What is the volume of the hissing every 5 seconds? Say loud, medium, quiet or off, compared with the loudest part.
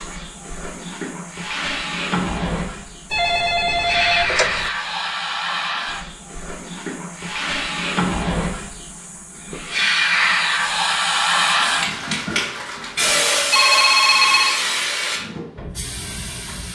medium, medium, loud, medium.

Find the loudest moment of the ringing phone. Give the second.
14 s.